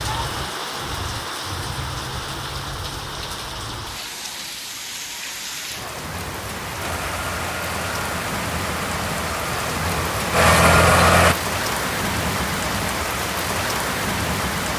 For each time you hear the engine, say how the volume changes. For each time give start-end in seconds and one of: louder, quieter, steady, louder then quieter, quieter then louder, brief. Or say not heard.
6.8-11.3 louder.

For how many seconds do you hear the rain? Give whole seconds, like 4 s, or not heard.
15 s.